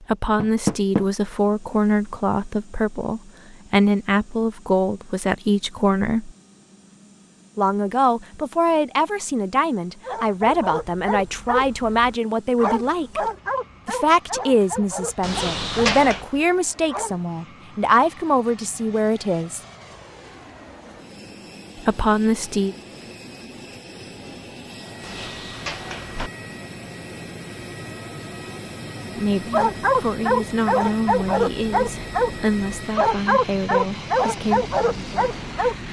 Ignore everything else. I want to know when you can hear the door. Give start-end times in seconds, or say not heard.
0.3-1.1, 15.2-16.2, 25.0-26.3.